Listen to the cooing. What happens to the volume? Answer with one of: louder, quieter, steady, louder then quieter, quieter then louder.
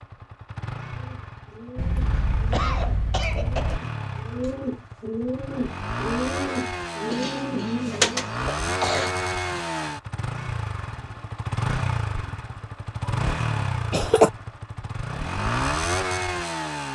louder.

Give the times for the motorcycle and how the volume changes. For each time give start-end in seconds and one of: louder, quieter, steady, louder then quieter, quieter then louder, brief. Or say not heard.
0.0-16.9 louder.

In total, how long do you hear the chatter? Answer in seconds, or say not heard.
not heard.